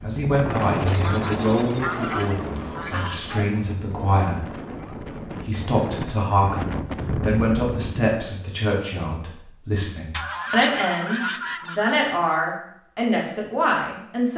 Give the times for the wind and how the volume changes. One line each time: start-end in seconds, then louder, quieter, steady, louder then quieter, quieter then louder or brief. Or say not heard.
0.0-8.2 quieter then louder.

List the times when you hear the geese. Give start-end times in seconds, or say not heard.
0.8-3.5, 10.1-12.0.